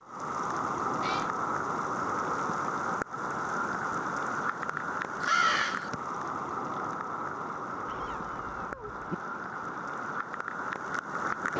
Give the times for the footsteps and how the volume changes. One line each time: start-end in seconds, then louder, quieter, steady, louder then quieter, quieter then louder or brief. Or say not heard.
not heard.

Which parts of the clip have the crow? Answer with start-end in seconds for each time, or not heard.
4.6-5.9.